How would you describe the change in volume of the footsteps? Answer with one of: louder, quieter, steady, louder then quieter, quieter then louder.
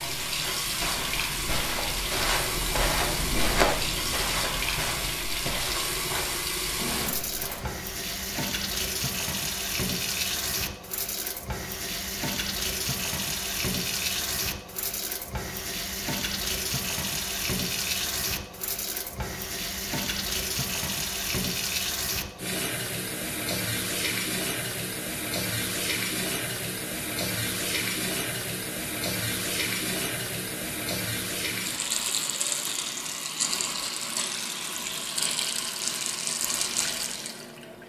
louder then quieter.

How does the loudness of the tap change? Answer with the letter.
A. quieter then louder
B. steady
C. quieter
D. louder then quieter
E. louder
B.